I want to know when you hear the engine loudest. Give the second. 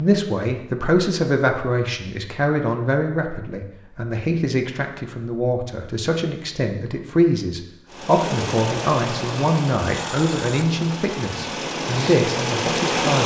13 s.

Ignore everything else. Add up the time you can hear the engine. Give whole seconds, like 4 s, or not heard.
5 s.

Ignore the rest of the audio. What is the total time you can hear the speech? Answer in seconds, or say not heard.
13 s.